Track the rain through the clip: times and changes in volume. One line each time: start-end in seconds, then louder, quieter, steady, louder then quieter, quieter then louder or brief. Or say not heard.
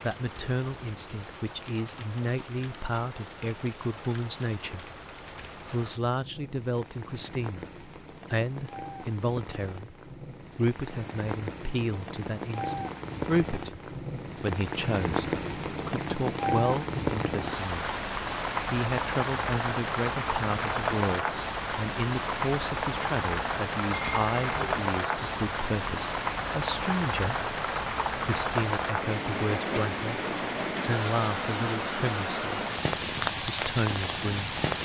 0.0-34.8 louder.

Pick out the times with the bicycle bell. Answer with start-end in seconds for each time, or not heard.
23.9-24.8.